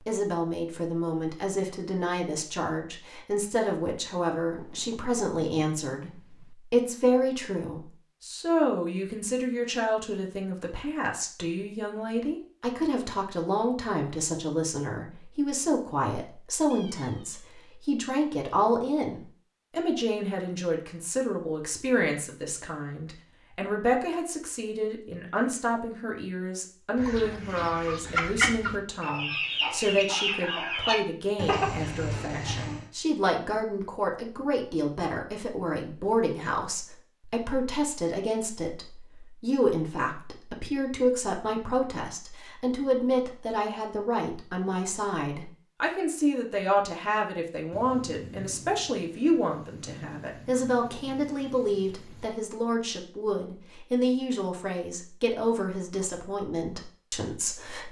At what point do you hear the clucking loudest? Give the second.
28 s.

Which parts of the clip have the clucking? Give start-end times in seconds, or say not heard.
26.9-32.9.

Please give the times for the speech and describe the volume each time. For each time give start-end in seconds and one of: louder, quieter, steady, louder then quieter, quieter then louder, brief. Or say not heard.
0.0-57.8 steady.